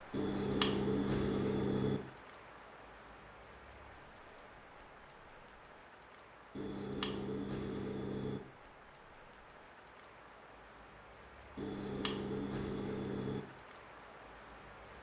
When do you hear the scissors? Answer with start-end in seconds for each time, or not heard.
0.1-2.0, 6.5-8.4, 11.6-13.4.